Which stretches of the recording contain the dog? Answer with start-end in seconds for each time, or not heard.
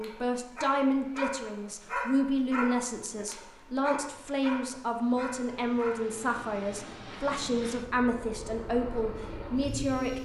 0.0-6.2.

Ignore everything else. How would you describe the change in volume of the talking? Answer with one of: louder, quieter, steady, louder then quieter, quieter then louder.
steady.